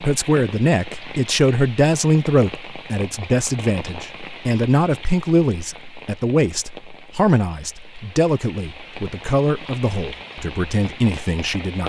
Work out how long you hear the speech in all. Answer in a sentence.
You can hear the speech for 12 seconds altogether.